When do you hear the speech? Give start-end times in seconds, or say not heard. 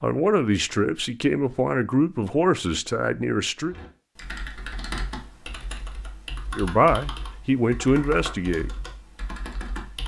0.0-3.8, 6.5-8.7.